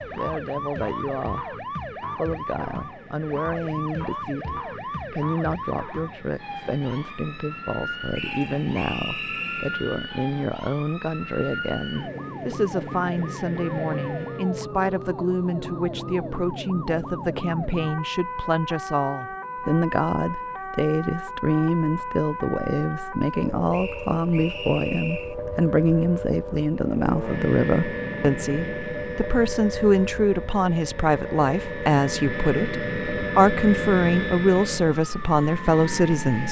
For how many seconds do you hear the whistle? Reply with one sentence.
You can hear the whistle for 3 seconds altogether.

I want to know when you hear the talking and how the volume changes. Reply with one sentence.
The talking can be heard briefly from 0.1 to 1.5 s; and from 2.1 to 36.4 s, getting louder.